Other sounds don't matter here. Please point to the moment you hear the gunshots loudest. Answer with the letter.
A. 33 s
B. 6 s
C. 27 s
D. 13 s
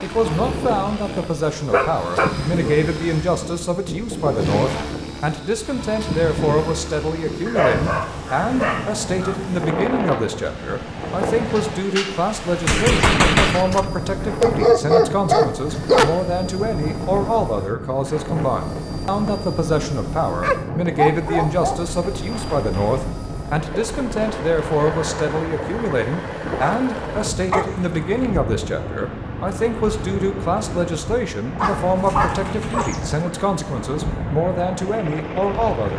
D.